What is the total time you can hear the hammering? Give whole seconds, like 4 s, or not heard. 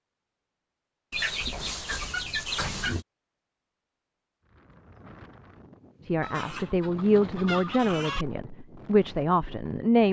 not heard.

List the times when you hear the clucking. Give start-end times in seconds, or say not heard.
1.1-3.0, 6.2-8.2.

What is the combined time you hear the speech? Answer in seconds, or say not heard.
4 s.